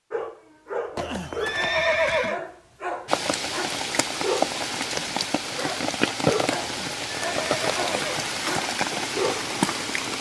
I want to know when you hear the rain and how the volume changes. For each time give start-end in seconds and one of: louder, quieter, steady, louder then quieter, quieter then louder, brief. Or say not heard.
3.0-10.1 steady.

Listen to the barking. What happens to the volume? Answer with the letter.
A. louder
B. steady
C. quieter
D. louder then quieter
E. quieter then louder
B.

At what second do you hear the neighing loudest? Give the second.
2 s.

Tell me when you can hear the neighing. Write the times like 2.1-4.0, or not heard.
0.9-2.4, 6.6-8.2.